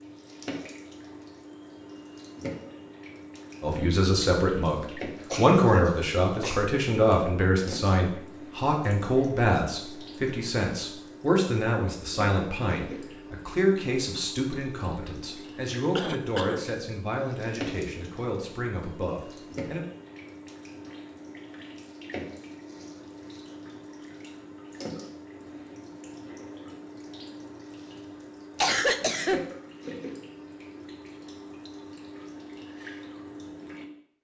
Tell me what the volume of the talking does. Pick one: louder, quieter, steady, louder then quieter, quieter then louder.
quieter.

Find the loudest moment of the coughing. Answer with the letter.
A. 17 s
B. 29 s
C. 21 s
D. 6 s
B.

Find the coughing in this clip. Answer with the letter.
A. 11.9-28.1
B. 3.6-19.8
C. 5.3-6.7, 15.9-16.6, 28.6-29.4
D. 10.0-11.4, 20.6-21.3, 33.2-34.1
C.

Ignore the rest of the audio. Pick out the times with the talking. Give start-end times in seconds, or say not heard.
3.6-19.8.